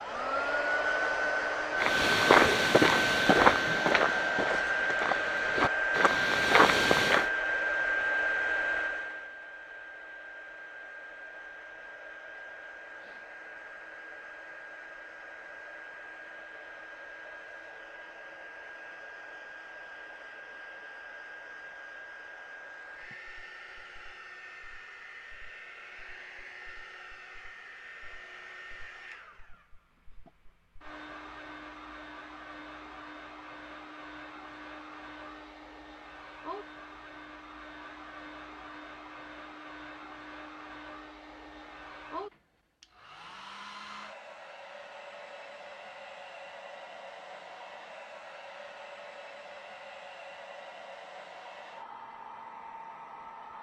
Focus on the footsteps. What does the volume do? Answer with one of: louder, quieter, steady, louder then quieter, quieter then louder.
quieter then louder.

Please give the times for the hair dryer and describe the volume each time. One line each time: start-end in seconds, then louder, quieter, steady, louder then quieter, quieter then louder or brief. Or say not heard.
0.0-53.5 quieter.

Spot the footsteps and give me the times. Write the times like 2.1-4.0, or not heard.
1.8-7.2.